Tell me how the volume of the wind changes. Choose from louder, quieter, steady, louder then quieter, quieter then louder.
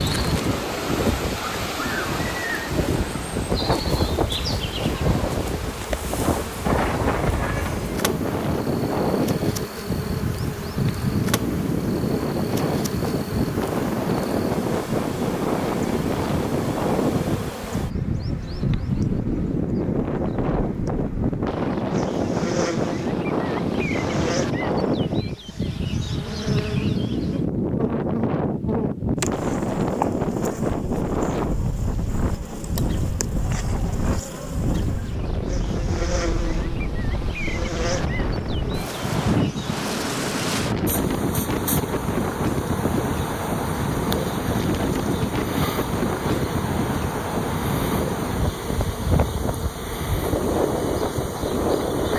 steady.